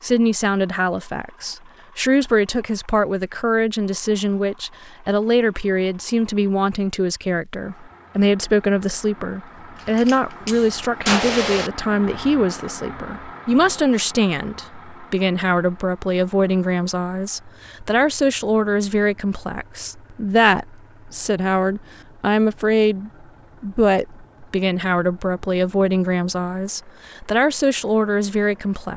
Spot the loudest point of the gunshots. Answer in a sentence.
The volume of the gunshots peaks at 11 seconds.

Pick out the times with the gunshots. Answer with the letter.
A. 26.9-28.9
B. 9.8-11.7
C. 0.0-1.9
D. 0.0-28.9
B.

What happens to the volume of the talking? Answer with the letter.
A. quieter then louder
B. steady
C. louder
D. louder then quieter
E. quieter
B.